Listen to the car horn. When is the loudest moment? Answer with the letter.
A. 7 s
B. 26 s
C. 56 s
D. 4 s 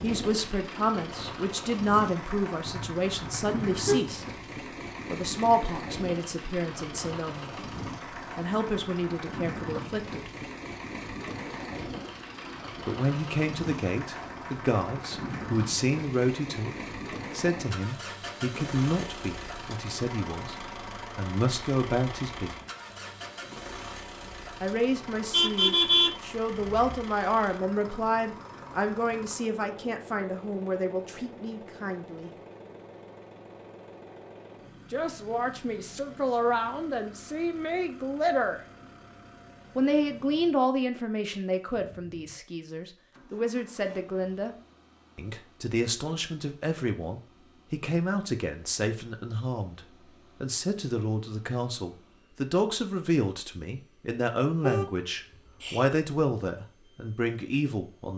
B.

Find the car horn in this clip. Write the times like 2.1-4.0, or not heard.
2.6-4.0, 25.3-27.0, 54.6-55.9.